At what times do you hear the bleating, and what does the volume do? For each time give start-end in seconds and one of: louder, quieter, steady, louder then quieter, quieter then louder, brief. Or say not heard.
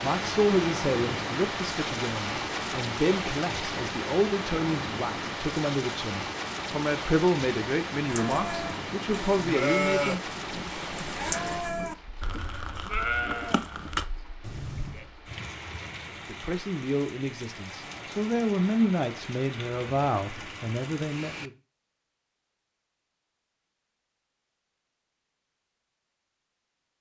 8.1-15.1 steady.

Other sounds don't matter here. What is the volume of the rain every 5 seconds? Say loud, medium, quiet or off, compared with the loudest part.
loud, loud, medium, medium, medium, off.